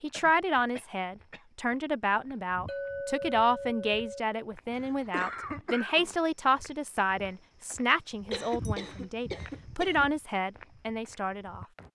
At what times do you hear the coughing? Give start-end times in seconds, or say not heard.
0.1-1.4, 4.7-6.2, 8.3-10.1.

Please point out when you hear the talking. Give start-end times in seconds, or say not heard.
0.0-11.7.